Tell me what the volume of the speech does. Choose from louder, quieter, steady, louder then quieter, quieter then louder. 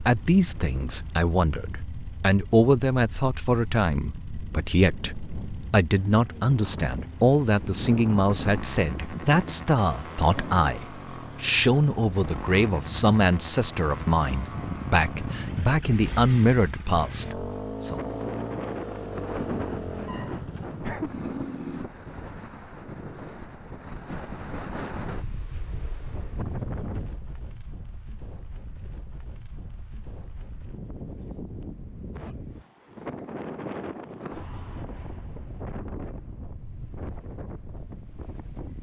steady.